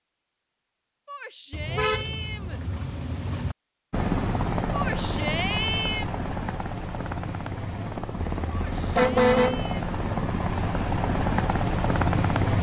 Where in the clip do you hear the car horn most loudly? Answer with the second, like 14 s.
9 s.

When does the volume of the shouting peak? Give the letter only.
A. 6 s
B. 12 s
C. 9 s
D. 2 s
A.